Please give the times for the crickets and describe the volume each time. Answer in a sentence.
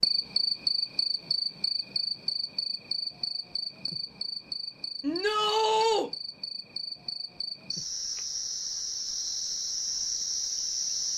You can hear the crickets from 0.0 to 11.1 s, getting quieter then louder.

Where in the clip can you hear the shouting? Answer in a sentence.
You can hear the shouting from 5.0 to 6.1 s.